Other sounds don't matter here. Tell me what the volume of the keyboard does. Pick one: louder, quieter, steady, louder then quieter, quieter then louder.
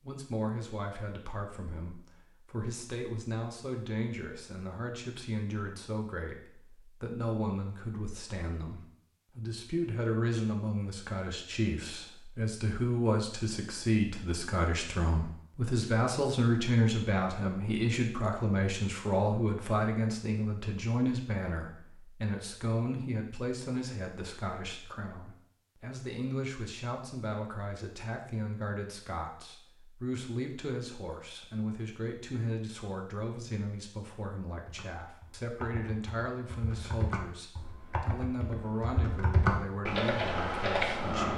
louder.